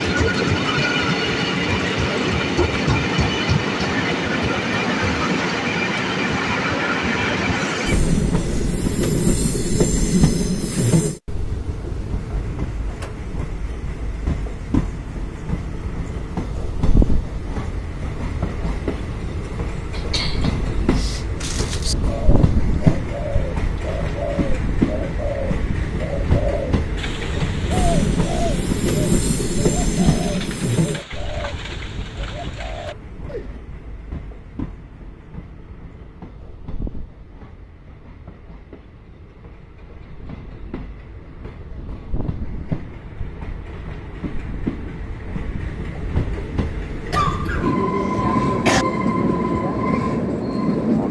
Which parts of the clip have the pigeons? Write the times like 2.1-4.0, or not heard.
21.9-33.6.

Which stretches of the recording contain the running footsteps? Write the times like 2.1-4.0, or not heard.
not heard.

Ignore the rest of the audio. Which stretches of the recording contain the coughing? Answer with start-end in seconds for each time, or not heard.
19.9-21.9, 47.1-48.9.